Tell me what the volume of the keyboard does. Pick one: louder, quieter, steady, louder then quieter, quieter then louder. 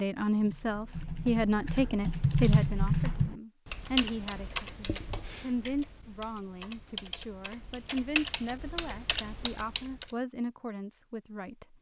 quieter then louder.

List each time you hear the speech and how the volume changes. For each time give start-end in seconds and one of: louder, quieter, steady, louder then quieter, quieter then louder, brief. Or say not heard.
0.0-11.7 quieter.